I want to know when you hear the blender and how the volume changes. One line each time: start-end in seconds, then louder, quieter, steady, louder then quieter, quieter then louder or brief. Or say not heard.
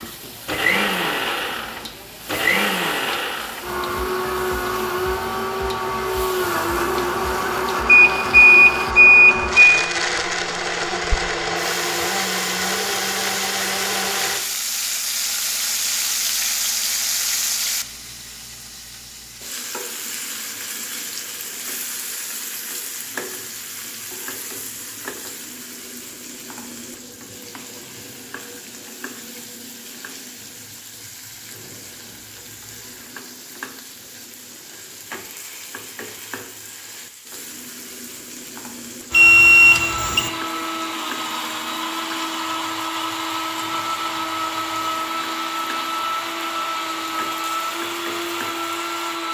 0.0-14.4 steady
39.1-49.2 steady.